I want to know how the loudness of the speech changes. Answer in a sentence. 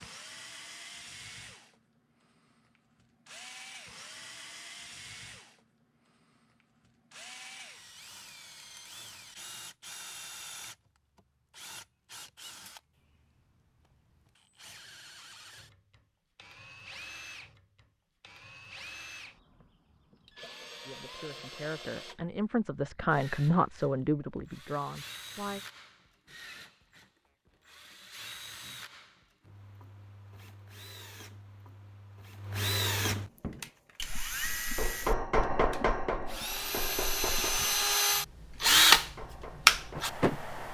The volume of the speech goes up, then down.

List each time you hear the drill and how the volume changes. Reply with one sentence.
You can hear the drill from 0.0 to 40.6 s, getting louder.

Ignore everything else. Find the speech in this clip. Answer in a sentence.
The speech can be heard from 20.9 to 25.6 s.